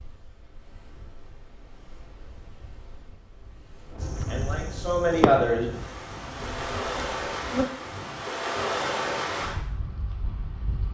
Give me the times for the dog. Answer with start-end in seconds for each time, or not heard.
not heard.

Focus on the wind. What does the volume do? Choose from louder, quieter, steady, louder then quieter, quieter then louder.
louder.